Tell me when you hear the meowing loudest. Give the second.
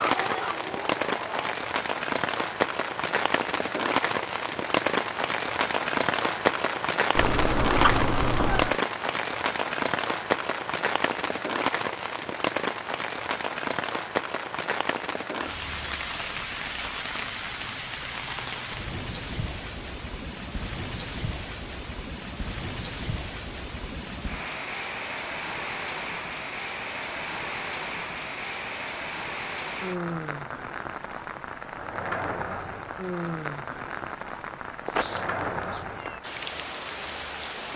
8 s.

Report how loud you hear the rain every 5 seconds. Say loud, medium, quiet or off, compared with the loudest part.
loud, loud, loud, medium, medium, medium, medium, medium.